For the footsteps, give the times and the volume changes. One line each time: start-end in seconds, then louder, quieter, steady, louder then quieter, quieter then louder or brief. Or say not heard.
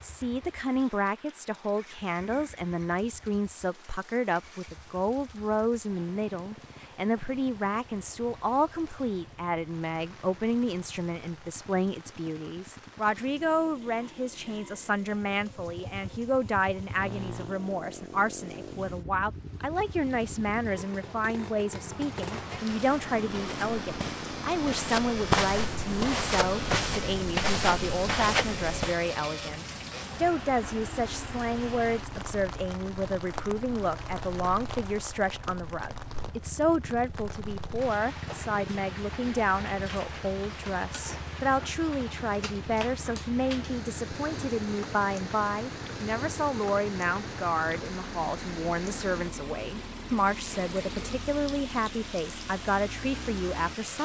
22.7-28.9 louder.